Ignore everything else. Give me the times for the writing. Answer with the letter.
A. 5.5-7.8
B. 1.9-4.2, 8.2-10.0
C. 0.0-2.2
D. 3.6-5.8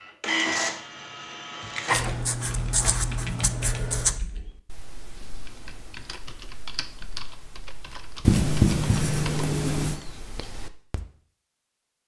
B.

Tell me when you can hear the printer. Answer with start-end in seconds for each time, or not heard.
0.0-2.2.